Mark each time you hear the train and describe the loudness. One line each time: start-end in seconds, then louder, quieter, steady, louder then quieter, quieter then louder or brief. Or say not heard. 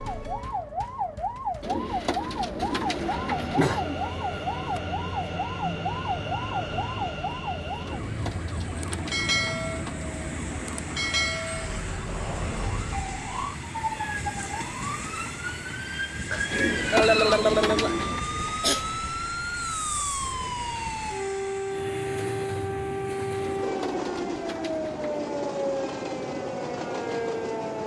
2.8-27.8 steady.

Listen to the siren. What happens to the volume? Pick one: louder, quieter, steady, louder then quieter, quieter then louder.
steady.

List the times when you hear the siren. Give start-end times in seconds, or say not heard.
0.0-27.8.